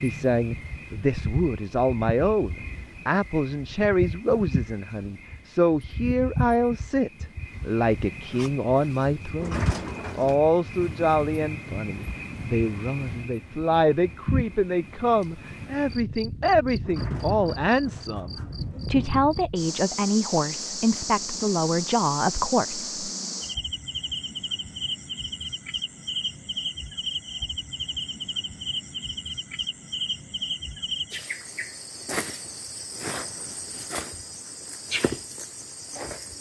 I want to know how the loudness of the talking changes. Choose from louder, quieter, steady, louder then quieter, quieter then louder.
steady.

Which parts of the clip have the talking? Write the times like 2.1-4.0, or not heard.
0.0-22.9.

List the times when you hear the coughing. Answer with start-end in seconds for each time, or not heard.
not heard.